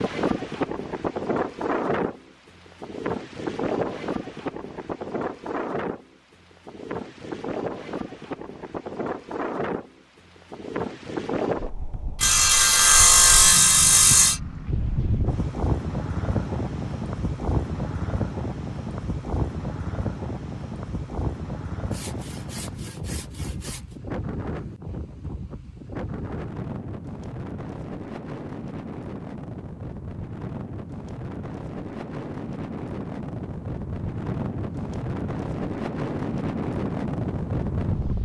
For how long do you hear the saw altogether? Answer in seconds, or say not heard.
4 s.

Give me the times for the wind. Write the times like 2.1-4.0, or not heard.
0.0-38.1.